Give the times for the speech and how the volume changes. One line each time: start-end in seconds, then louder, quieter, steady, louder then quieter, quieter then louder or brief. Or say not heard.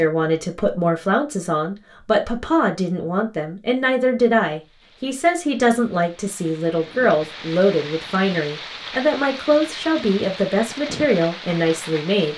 0.0-12.3 steady.